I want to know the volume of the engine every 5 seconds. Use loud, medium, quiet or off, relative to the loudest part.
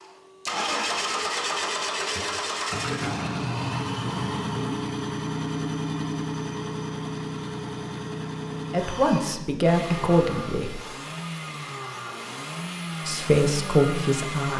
loud, loud, medium.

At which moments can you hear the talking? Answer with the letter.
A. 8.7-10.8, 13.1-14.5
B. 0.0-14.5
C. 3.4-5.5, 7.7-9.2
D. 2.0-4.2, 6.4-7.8
A.